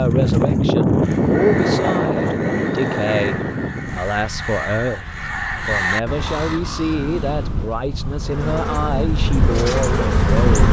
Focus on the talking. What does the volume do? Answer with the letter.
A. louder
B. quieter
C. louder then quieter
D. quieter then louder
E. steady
E.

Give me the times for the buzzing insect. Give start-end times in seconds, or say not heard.
8.2-10.6.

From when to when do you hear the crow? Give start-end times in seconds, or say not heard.
1.0-7.7.